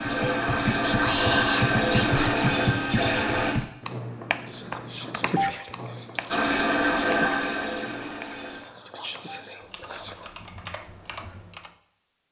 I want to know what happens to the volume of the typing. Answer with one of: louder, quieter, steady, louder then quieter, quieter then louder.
quieter.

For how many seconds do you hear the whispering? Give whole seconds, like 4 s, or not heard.
6 s.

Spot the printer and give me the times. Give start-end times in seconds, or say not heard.
0.0-3.5, 6.2-8.6.